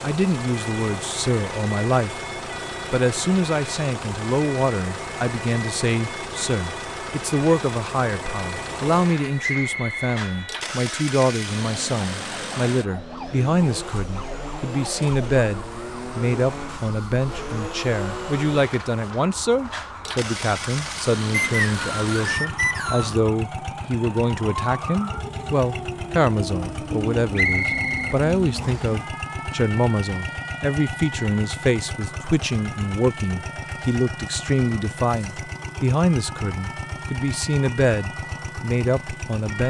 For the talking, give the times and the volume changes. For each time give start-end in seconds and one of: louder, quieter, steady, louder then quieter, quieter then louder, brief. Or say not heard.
0.0-2.2 brief
2.9-39.6 steady.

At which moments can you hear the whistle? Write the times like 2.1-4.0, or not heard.
9.4-10.8, 21.3-23.1, 27.4-28.9.